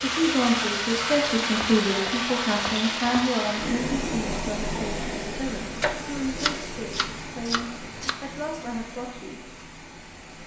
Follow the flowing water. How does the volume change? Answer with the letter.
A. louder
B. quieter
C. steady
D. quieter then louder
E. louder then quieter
B.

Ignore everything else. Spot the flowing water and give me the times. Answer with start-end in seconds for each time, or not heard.
0.0-10.4.